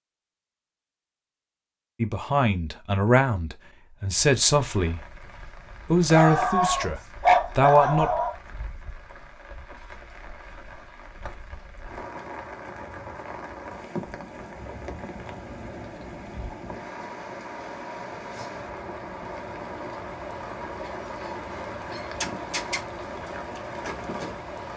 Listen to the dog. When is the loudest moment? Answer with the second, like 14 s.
7 s.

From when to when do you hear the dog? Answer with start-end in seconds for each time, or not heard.
6.1-8.3, 20.9-22.8.